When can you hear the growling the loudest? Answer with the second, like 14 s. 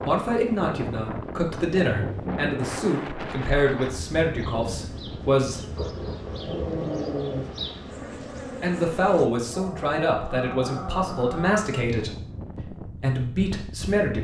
7 s.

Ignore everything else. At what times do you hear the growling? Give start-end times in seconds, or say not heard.
1.9-2.5, 5.7-7.5, 9.5-11.8.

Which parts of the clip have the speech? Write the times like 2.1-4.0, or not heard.
0.0-5.8, 8.6-14.1.